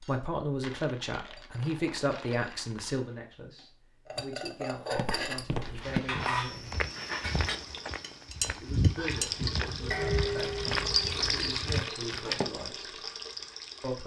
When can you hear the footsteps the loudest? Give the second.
9 s.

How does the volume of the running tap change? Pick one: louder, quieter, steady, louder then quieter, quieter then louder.
louder then quieter.